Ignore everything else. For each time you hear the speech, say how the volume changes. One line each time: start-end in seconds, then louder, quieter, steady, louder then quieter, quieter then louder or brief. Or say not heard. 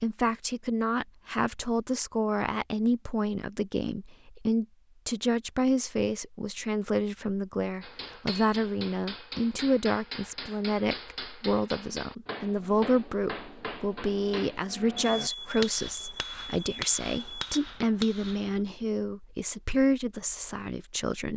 0.0-21.3 steady.